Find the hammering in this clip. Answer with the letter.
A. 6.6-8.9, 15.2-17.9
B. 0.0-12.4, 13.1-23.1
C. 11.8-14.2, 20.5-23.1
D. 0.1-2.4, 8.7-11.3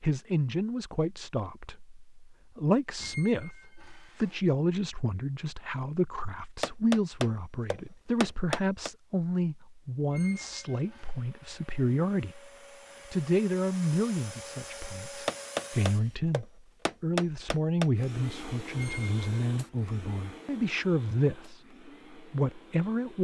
A.